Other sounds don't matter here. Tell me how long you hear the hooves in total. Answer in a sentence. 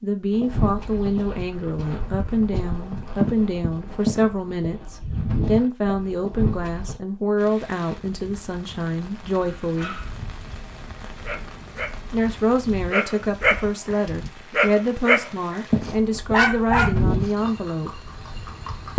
The hooves can be heard for 10 seconds in total.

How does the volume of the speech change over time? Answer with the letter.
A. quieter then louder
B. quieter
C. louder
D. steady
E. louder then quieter
D.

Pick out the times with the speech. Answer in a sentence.
You can hear the speech from 0.0 to 10.0 s and from 12.1 to 18.0 s.